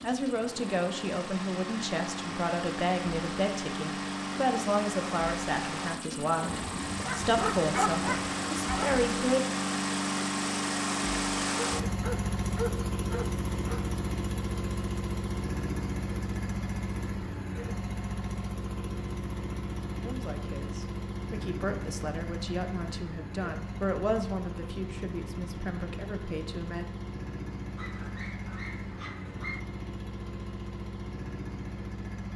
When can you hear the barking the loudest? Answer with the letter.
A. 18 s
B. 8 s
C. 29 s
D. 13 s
B.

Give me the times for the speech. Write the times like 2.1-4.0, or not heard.
0.0-9.4, 20.0-26.9.